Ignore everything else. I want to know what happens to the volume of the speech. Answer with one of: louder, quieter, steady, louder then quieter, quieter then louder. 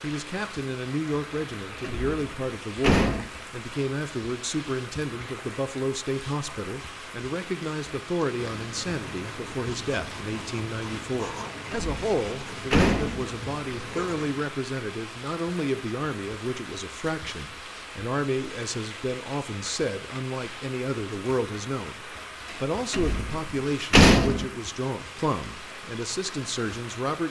steady.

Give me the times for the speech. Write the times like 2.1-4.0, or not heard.
0.0-27.2.